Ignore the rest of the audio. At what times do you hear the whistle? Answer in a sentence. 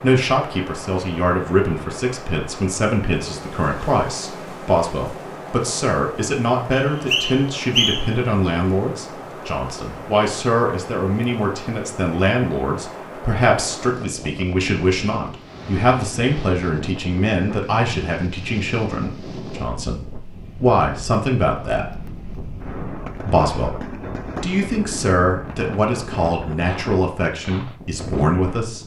The whistle can be heard from 6.7 to 8.2 s.